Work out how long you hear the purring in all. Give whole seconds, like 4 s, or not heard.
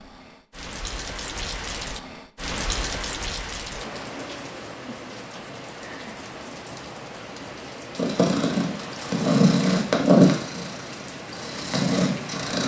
5 s.